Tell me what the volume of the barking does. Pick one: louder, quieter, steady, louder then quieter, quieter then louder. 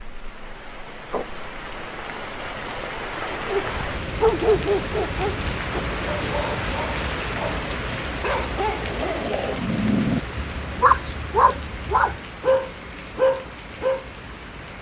quieter then louder.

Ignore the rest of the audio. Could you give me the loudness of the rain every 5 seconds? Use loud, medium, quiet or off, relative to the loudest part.
loud, loud, medium.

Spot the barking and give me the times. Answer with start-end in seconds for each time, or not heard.
3.3-14.1.